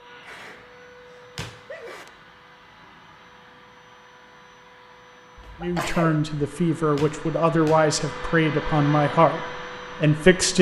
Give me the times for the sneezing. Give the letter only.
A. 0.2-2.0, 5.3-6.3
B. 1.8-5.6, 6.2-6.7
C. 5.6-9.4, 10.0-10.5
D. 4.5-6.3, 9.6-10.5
A.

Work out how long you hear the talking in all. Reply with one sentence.
You can hear the talking for 4 seconds altogether.